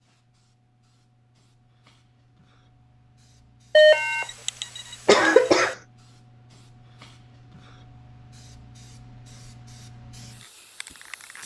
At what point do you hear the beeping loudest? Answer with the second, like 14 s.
4 s.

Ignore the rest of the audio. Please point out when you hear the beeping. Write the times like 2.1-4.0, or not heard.
3.8-5.8.